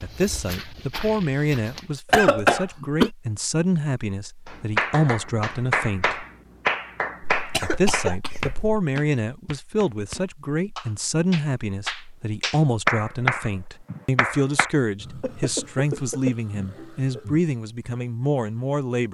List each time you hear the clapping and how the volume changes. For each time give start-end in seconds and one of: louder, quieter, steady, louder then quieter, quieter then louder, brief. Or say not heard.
4.5-14.7 quieter then louder.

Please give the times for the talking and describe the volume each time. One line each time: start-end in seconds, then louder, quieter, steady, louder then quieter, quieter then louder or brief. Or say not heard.
0.0-6.2 steady
7.6-19.0 steady.